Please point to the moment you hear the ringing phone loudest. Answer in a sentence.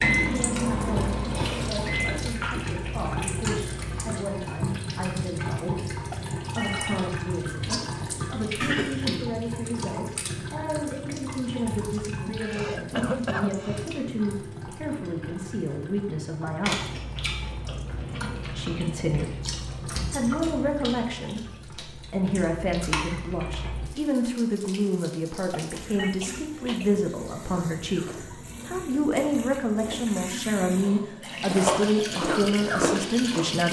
The loudest moment of the ringing phone is at 7 seconds.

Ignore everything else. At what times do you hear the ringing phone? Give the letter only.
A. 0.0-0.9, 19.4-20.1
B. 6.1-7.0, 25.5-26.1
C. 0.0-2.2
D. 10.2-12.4
B.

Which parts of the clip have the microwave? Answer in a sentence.
You can hear the microwave from 0.0 to 2.2 s.